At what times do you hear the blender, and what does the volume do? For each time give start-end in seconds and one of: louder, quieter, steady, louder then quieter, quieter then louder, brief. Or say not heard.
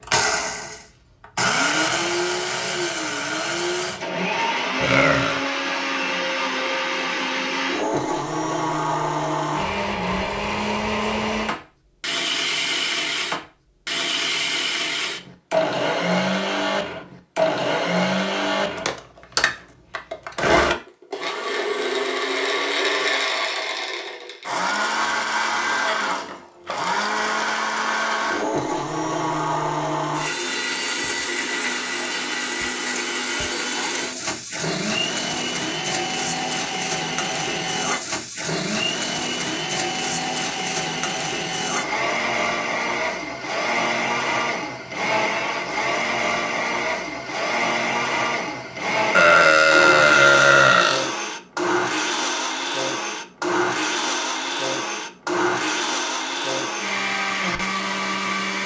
0.0-58.6 steady.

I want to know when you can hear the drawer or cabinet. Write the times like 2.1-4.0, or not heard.
not heard.